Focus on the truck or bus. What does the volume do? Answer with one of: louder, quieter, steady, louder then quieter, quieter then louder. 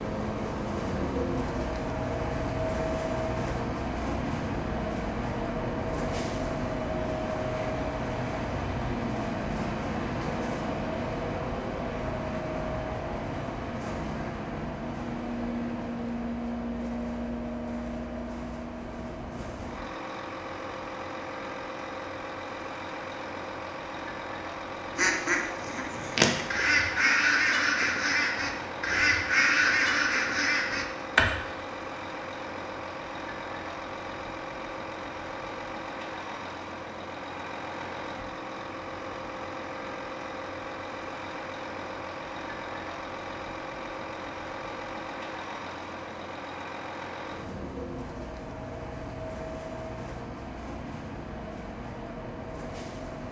quieter.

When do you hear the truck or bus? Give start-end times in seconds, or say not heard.
0.0-53.2.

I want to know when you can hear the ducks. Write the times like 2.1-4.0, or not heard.
24.9-31.4.